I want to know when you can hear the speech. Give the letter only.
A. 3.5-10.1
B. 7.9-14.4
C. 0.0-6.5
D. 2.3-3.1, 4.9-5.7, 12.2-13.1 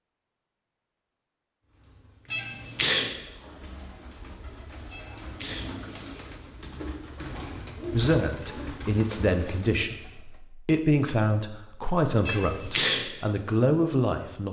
B.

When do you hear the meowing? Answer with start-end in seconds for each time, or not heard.
2.3-3.1, 4.9-5.7, 12.2-13.1.